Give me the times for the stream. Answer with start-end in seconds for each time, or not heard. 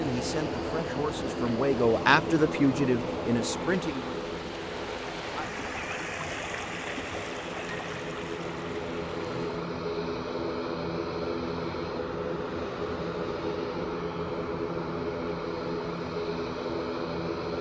0.0-9.7.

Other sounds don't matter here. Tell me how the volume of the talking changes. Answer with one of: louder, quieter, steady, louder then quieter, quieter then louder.
louder then quieter.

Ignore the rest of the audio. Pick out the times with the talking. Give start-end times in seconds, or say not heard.
0.0-4.2.